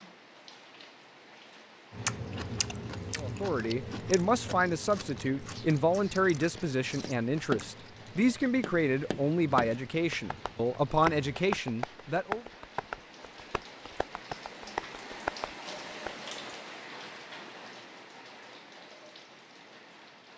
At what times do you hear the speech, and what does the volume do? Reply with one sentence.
The speech can be heard from 3.1 to 12.4 s, at a steady volume.